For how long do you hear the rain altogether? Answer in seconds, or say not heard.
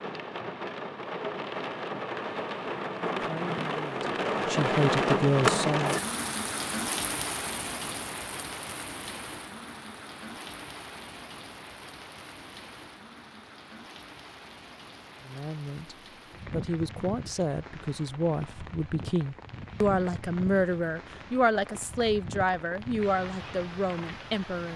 25 s.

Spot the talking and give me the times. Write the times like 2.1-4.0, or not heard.
3.2-6.0, 15.2-24.7.